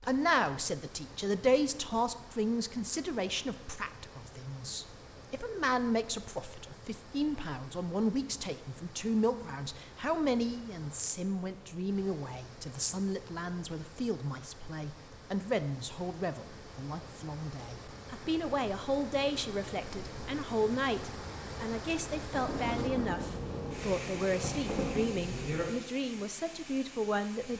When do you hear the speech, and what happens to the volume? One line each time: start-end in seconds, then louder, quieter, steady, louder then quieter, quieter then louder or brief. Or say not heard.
0.0-27.5 steady.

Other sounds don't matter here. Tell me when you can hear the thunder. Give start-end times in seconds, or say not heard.
22.3-25.6.